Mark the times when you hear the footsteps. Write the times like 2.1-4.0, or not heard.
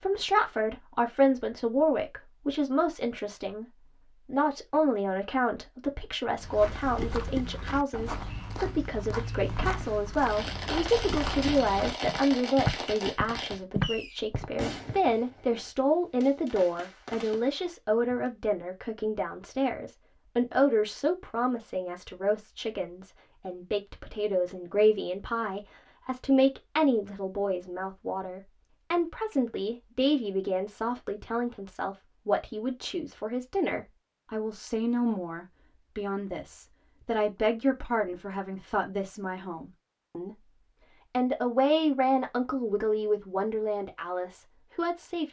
6.3-15.0.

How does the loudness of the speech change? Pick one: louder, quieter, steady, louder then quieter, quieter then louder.
steady.